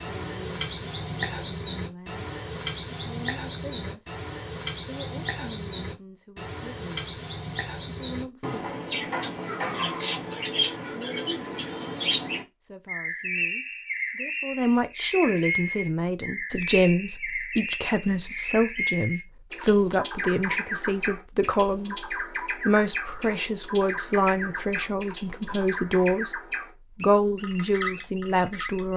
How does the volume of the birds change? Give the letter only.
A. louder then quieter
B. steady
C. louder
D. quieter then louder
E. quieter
E.